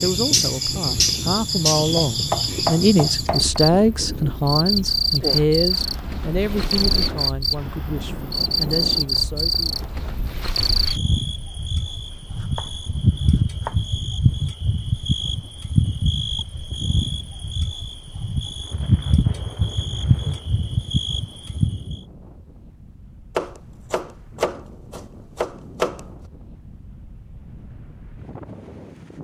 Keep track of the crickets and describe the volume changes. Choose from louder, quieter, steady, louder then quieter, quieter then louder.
steady.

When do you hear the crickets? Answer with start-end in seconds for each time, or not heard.
0.0-22.0.